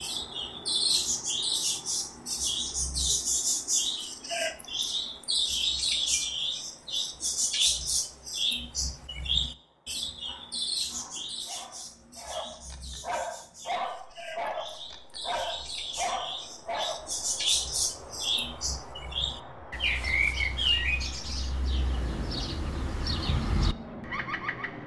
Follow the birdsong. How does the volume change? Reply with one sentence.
The volume of the birdsong goes down, then up.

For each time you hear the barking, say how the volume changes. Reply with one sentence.
The barking can be heard from 10.2 to 17.1 s, getting louder.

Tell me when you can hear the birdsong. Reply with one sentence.
The birdsong can be heard from 0.0 to 24.8 s.